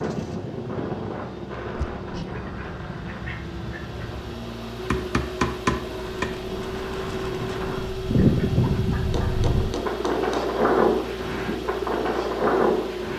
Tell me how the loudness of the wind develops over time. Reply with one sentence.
The loudness of the wind goes down, then up.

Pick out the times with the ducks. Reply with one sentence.
The ducks can be heard from 2.3 to 4.3 s and from 8.1 to 9.4 s.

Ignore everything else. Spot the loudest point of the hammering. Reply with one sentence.
The volume of the hammering peaks at 6 seconds.